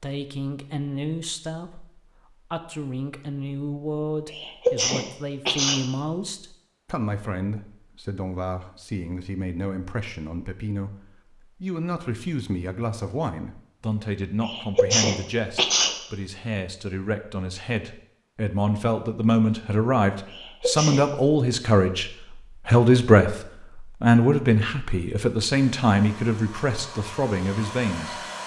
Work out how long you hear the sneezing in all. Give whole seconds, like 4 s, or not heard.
4 s.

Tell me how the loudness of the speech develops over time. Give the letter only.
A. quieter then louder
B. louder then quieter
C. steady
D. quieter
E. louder
E.